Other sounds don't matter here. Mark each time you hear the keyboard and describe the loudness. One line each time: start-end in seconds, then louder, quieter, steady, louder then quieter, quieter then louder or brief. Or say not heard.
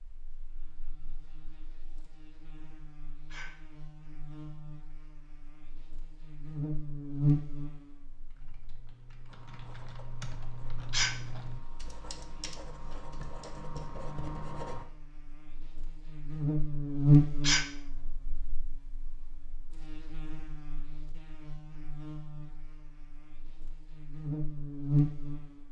8.2-13.9 louder then quieter.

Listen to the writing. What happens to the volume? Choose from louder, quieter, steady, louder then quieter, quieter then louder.
louder.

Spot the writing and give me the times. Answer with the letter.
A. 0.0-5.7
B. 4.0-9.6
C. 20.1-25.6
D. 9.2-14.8
D.